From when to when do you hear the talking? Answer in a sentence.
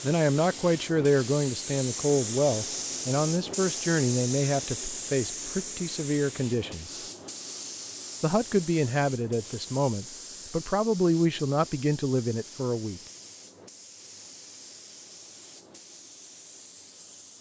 You can hear the talking from 0.0 to 7.0 s and from 8.2 to 13.0 s.